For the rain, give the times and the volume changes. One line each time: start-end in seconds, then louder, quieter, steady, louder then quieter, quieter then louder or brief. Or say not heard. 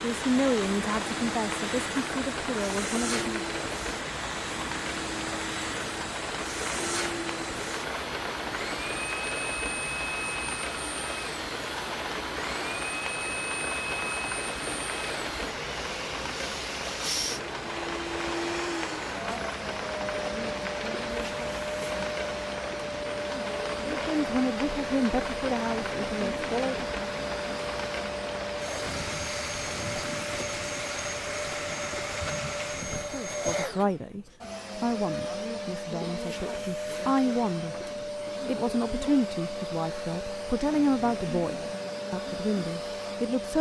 0.0-33.2 steady.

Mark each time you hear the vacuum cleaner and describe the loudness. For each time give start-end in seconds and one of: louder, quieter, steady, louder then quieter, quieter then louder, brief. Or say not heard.
0.0-43.5 steady.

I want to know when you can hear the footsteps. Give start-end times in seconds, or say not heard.
not heard.